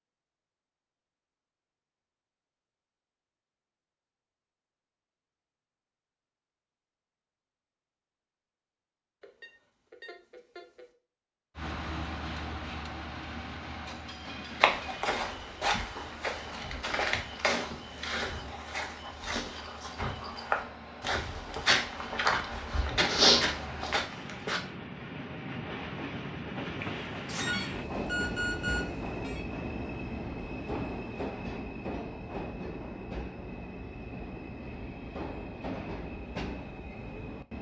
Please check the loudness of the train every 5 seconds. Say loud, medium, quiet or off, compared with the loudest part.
off, off, loud, medium, medium, loud, loud, loud.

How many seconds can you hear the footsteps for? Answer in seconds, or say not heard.
10 s.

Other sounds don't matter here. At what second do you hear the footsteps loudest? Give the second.
23 s.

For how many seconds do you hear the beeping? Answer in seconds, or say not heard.
4 s.